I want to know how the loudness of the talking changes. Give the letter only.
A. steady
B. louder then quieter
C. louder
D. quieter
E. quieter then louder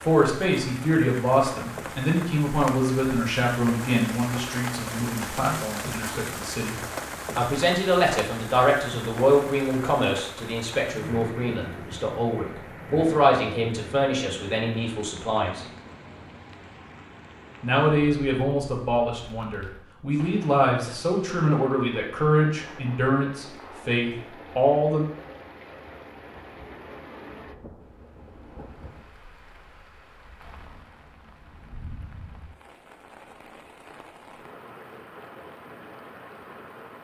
A.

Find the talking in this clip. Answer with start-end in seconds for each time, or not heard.
0.0-15.7, 17.6-25.1.